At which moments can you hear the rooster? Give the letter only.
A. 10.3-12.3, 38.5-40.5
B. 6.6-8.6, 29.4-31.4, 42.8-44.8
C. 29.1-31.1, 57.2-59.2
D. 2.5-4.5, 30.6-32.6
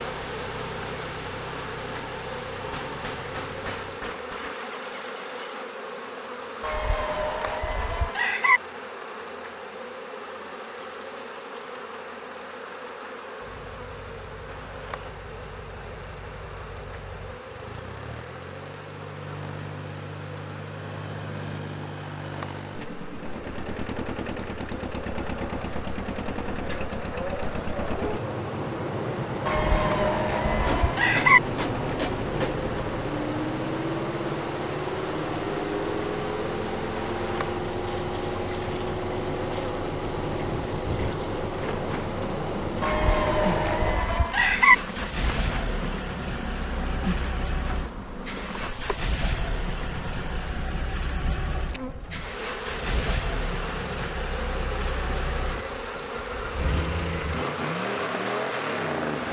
B.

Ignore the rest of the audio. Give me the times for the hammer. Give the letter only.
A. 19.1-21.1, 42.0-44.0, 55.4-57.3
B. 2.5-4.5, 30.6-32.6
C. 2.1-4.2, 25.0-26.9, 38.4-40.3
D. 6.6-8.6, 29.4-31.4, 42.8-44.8
B.